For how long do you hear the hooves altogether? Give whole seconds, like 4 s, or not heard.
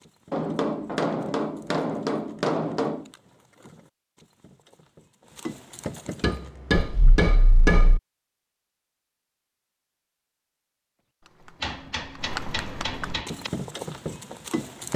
10 s.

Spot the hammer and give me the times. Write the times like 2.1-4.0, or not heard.
0.3-3.0, 6.2-8.0, 11.6-13.5.